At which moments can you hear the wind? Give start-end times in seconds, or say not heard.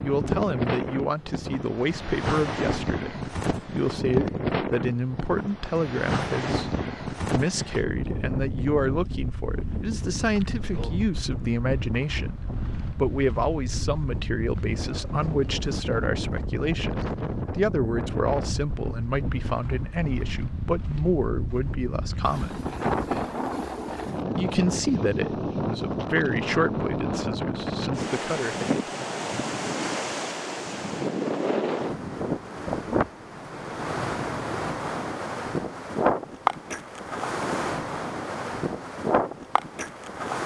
0.0-40.4.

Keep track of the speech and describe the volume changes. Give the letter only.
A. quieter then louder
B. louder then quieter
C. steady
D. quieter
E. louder
C.